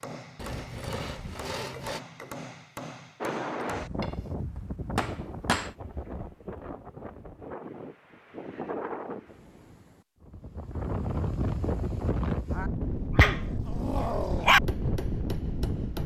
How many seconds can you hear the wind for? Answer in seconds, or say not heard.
13 s.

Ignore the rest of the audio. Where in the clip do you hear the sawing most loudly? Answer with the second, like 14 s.
2 s.